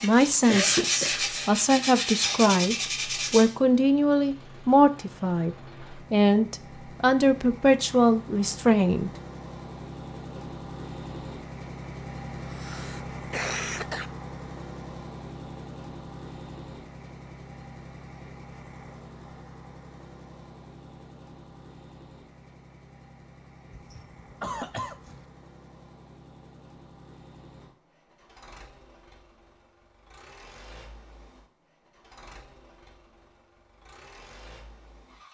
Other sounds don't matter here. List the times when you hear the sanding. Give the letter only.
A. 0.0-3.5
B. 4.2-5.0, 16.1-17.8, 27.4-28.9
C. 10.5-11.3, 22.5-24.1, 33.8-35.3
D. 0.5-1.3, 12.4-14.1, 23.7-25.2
A.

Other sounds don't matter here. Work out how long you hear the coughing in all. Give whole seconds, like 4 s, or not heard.
4 s.